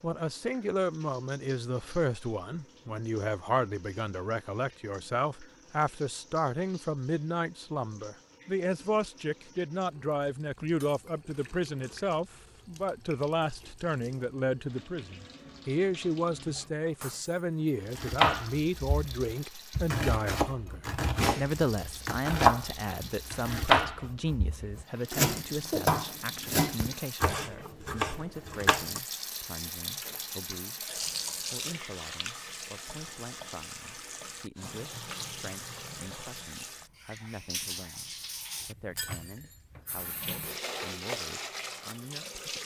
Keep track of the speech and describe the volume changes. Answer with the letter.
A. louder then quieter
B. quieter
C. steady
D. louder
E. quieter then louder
B.